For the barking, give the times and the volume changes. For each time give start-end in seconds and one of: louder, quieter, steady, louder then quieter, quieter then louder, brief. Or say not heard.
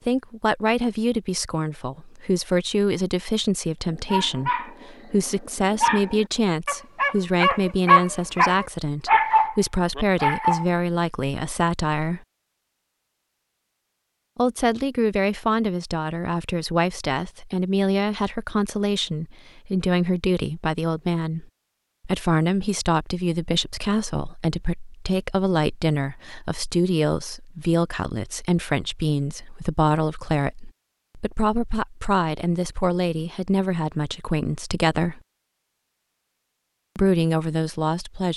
3.9-10.7 louder.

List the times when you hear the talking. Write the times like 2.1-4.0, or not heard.
0.1-12.2, 14.3-21.4, 22.1-35.2, 37.0-38.3.